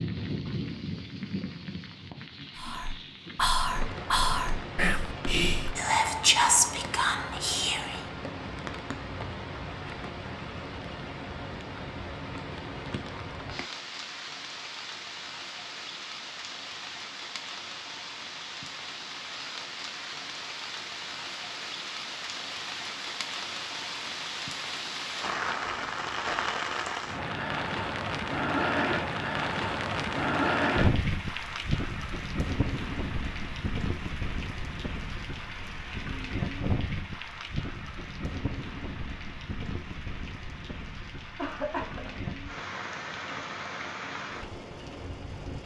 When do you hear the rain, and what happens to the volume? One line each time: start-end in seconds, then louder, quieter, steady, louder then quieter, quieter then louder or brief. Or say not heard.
0.0-45.6 louder then quieter.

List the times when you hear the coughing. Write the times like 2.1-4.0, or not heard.
41.4-42.3.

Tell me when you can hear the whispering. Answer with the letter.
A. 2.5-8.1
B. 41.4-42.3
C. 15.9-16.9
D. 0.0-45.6
A.